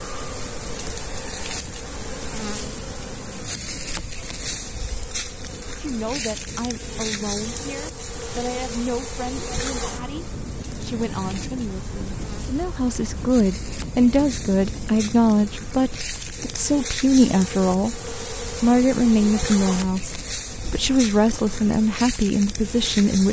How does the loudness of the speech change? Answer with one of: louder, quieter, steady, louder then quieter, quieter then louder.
louder.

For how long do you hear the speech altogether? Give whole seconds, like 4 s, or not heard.
17 s.